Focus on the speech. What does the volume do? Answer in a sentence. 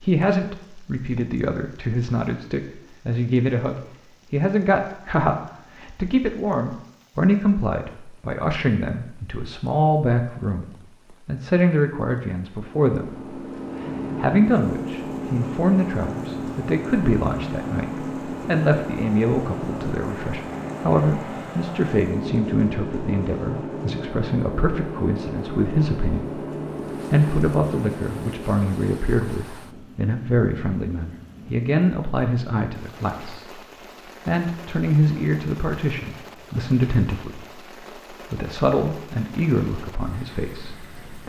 The volume of the speech stays about the same.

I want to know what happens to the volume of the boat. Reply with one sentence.
The volume of the boat stays about the same.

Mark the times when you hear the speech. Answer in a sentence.
You can hear the speech from 0.0 to 33.6 s and from 34.2 to 41.2 s.